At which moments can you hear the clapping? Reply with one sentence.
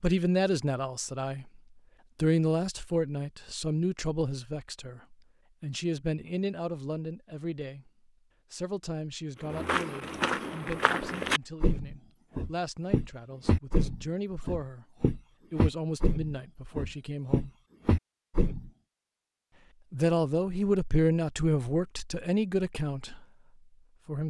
You can't hear the clapping here.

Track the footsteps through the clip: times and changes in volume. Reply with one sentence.
The footsteps can be heard from 9.4 to 18.7 s, at a steady volume.